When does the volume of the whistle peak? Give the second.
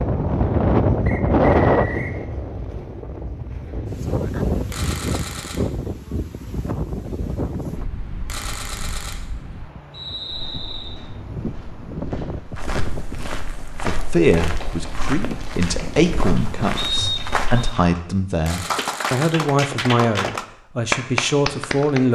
17 s.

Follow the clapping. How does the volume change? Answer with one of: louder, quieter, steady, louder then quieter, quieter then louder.
louder.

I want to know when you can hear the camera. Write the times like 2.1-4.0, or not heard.
4.7-5.6, 8.2-9.2, 18.4-19.3.